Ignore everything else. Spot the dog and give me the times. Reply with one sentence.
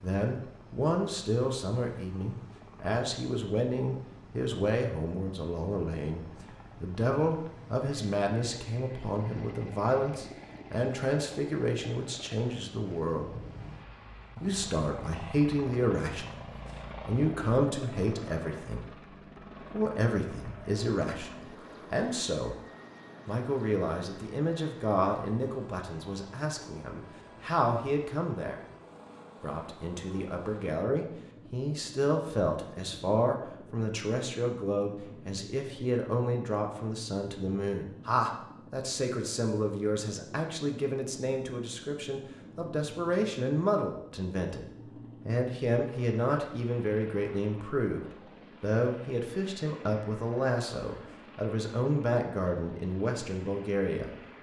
You can't hear the dog here.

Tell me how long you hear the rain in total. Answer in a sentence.
You can't hear the rain here.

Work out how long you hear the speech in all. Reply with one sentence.
The speech can be heard for 51 seconds in total.